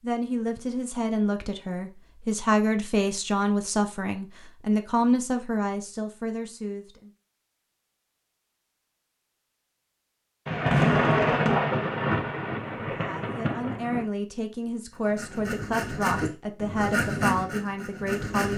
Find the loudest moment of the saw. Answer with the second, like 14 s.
17 s.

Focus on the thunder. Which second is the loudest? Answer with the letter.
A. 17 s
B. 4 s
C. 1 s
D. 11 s
D.